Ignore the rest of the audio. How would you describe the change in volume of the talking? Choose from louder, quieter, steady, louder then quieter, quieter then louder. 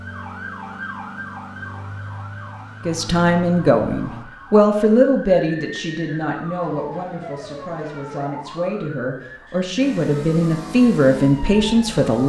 quieter then louder.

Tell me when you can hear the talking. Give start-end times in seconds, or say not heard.
2.9-12.2.